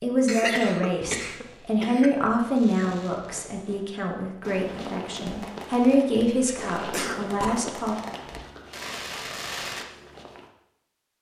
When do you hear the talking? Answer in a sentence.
You can hear the talking from 0.0 to 8.0 s.